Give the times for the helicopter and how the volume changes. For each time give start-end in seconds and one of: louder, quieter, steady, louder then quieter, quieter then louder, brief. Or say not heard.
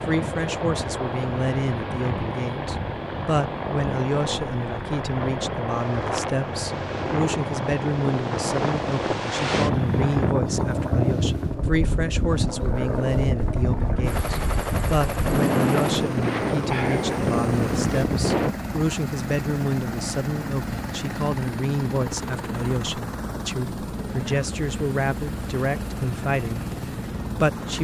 0.0-27.7 steady.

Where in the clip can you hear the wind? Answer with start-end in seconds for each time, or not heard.
0.0-18.6.